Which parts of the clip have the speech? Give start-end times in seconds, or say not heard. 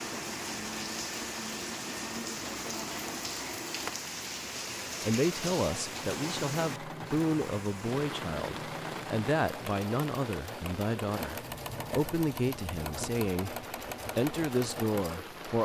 5.0-15.6.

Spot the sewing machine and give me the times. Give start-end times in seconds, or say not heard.
0.0-15.4.